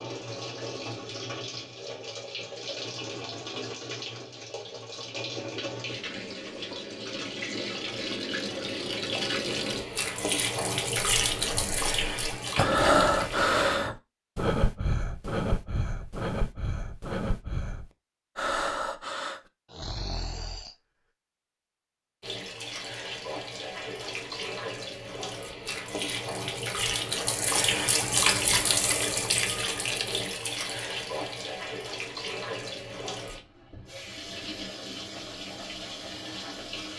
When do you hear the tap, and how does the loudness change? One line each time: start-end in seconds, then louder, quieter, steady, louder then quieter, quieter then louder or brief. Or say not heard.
0.0-13.5 louder
22.2-36.9 louder then quieter.